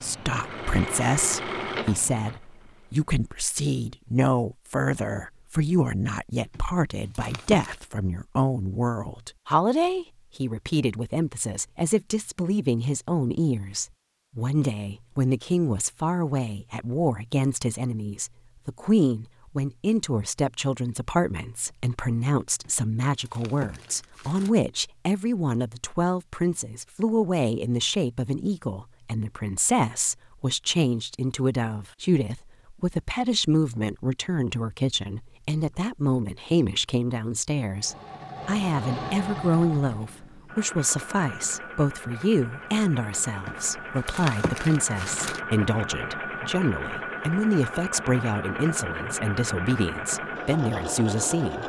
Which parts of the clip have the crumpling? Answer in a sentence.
The crumpling can be heard from 6.5 to 7.8 s, from 22.6 to 24.5 s and from 43.5 to 45.4 s.